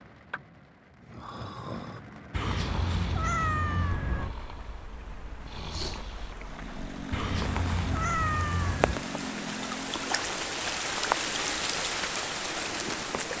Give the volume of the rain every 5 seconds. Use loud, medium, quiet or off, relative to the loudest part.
quiet, medium, loud.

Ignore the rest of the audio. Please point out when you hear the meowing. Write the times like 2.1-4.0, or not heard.
2.3-4.3, 7.1-9.1.